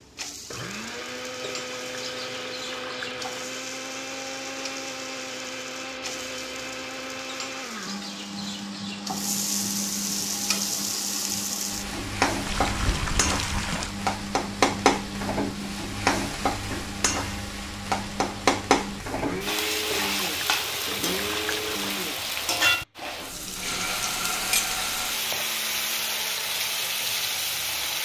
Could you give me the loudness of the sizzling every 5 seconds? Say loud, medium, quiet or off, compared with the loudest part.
quiet, medium, loud, loud, loud, loud.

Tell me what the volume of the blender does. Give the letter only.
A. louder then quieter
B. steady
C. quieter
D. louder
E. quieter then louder
B.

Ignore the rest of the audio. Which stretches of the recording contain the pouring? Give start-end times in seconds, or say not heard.
1.4-3.5, 12.4-13.9, 19.9-21.9.